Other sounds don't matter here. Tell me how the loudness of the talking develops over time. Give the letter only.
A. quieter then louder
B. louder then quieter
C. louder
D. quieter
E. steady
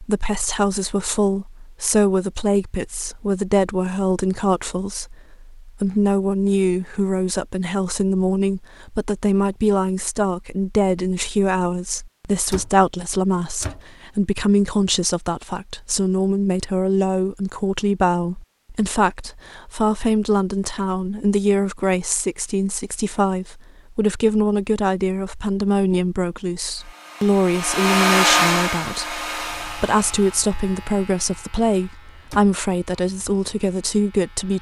E.